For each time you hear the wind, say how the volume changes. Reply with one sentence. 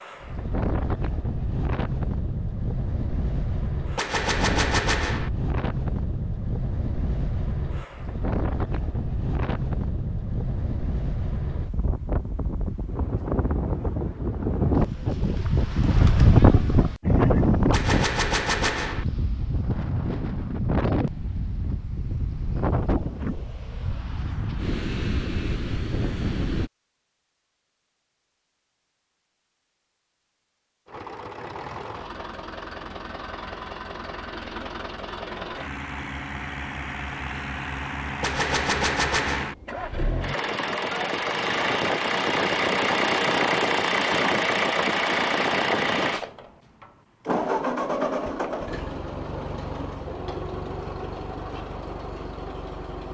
You can hear the wind from 0.0 to 26.7 s, getting louder then quieter.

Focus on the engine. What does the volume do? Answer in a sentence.
The volume of the engine goes up, then down.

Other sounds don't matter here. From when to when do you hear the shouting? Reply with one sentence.
The shouting can't be heard in this clip.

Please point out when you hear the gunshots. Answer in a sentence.
The gunshots can be heard from 4.0 to 5.3 s, from 17.7 to 19.1 s and from 38.2 to 39.5 s.